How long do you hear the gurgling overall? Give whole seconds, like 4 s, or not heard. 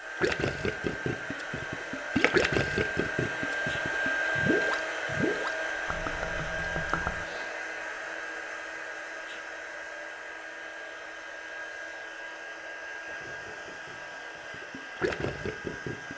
10 s.